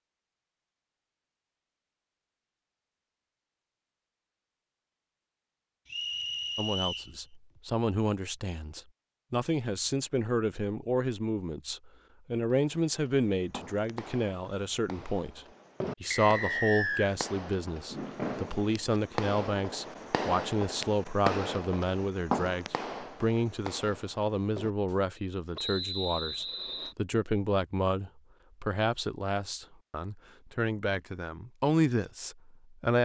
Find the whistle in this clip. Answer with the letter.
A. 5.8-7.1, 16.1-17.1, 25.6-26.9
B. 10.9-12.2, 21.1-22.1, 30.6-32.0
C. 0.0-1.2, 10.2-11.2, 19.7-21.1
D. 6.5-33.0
A.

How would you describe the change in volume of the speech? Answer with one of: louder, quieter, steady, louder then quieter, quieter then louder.
steady.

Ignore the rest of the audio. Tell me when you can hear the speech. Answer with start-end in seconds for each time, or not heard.
6.5-33.0.